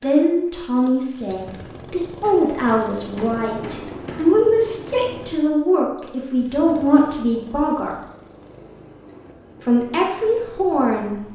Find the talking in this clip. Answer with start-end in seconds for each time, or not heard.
0.0-8.0, 9.6-11.2.